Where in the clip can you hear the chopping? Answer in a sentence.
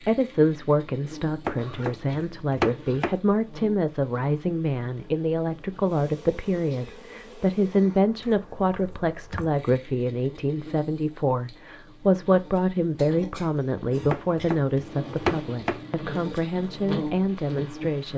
You can hear the chopping from 1.4 to 3.2 s, from 8.2 to 9.6 s and from 14.1 to 15.8 s.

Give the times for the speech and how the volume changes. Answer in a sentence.
The speech can be heard from 0.1 to 18.1 s, at a steady volume.